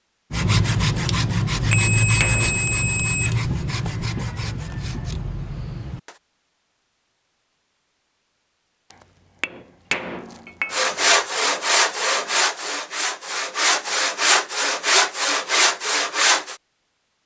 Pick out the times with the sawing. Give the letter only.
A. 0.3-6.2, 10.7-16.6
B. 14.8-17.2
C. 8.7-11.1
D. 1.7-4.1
A.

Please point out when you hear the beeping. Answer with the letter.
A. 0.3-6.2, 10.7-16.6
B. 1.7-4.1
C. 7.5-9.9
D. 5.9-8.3
B.